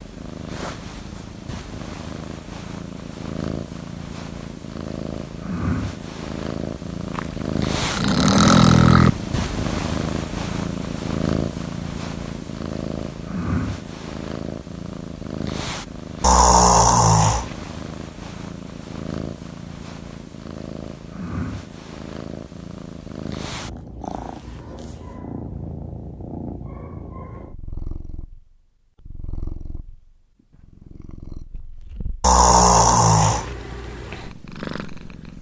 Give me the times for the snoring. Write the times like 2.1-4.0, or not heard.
7.2-9.1, 16.2-17.5, 32.2-33.5.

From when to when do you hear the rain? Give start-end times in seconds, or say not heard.
not heard.